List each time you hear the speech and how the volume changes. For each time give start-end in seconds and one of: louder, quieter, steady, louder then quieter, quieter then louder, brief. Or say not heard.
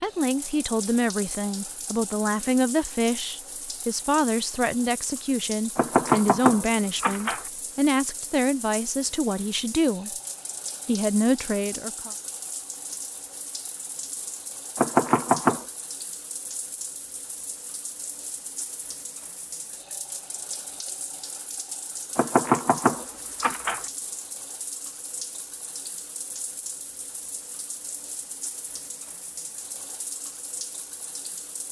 0.0-10.2 steady
10.8-12.1 brief.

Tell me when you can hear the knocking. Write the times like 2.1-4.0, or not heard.
5.8-7.5, 14.8-15.7, 22.1-23.9.